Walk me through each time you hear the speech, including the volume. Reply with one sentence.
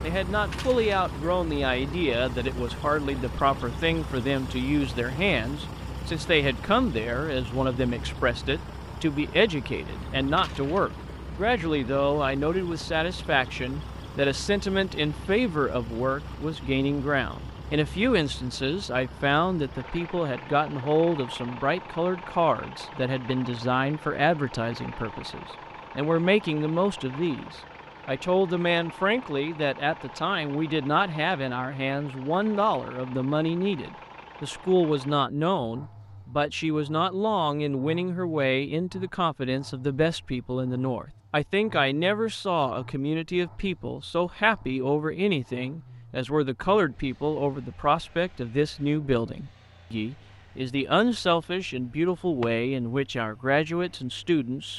The speech can be heard from 0.0 to 54.7 s, at a steady volume.